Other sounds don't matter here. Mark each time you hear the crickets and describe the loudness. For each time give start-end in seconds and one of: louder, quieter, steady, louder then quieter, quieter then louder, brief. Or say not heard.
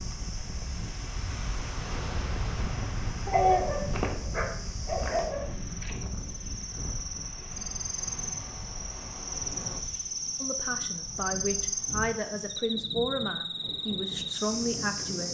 0.0-15.2 louder.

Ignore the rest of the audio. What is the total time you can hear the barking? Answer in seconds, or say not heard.
2 s.